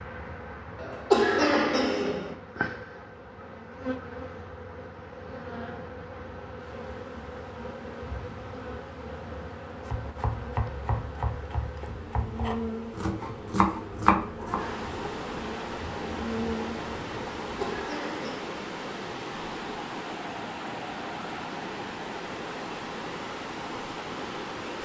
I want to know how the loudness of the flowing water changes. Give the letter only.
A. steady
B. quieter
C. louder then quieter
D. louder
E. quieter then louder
D.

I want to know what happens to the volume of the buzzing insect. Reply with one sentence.
The loudness of the buzzing insect stays about the same.